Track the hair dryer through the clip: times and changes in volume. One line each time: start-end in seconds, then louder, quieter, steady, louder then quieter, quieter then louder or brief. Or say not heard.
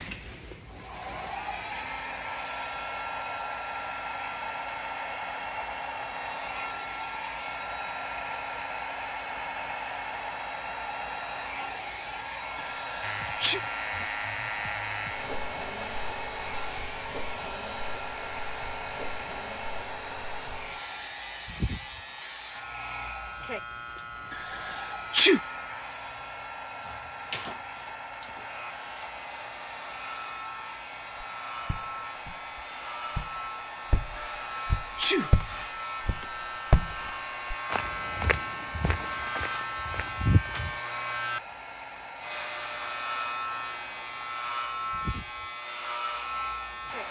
0.0-47.0 quieter.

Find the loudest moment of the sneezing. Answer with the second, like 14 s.
25 s.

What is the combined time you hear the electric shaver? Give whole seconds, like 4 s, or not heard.
34 s.